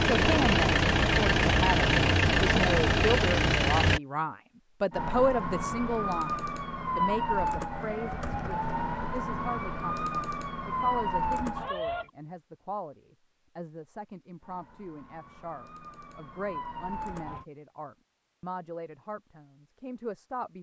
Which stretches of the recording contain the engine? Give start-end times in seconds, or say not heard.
0.0-4.0.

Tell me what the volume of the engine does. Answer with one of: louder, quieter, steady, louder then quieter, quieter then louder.
steady.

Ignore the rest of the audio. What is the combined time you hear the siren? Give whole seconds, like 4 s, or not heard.
10 s.